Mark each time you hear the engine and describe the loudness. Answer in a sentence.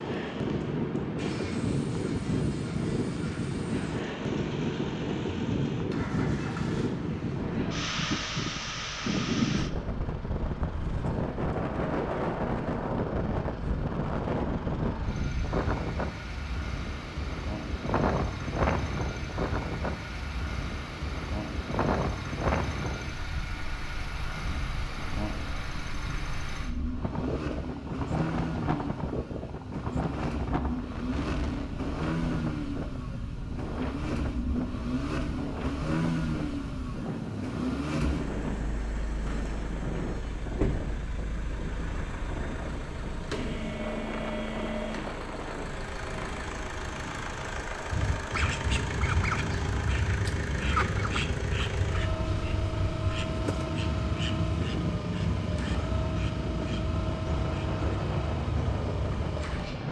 The engine can be heard from 0.0 to 59.8 s, getting louder.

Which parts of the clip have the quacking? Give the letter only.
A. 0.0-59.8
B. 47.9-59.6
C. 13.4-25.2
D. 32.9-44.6
B.